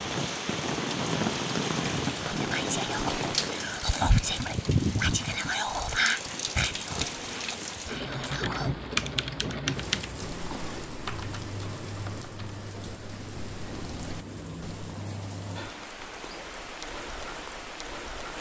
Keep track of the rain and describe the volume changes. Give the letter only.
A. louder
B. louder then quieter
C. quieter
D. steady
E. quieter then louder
C.